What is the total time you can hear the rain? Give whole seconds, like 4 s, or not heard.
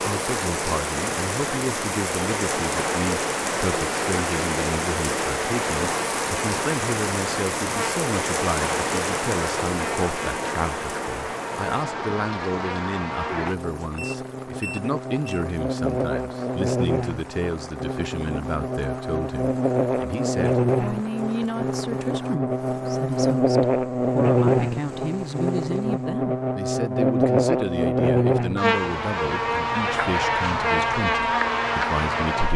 26 s.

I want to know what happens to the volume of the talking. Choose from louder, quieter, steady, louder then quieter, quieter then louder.
steady.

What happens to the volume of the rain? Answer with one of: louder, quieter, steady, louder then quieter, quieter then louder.
quieter.